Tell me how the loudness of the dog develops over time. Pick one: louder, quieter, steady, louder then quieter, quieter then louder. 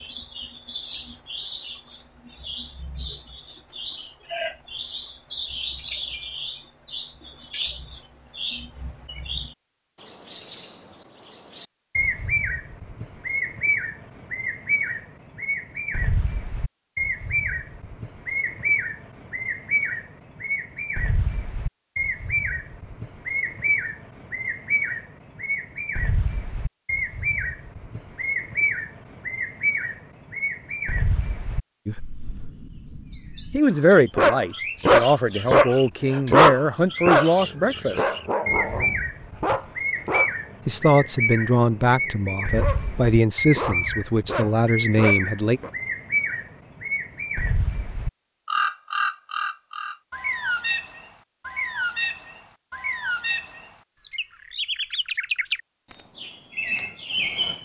quieter then louder.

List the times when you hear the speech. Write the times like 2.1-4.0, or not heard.
33.5-38.1, 40.6-45.6.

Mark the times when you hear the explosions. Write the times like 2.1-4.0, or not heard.
not heard.